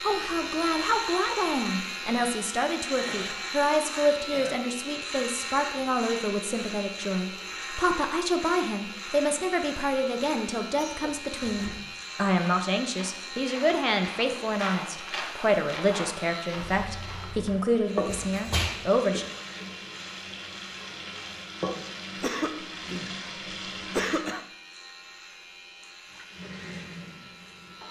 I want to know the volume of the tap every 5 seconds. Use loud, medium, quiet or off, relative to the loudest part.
off, off, off, loud, loud, medium.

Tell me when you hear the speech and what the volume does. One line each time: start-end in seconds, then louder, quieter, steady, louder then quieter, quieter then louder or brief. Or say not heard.
0.0-19.2 steady.